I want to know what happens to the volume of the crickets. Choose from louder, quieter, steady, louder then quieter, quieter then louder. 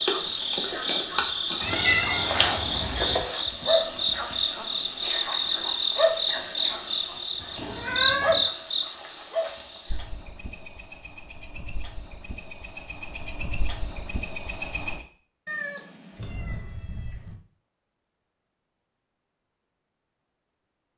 quieter.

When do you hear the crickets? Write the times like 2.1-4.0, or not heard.
0.0-15.1.